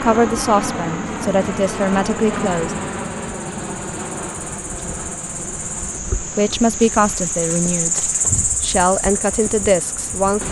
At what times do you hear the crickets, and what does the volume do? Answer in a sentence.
You can hear the crickets from 0.0 to 10.4 s, getting louder.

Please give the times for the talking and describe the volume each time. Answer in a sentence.
You can hear the talking briefly from 0.0 to 2.8 s; and from 6.2 to 10.4 s, getting quieter then louder.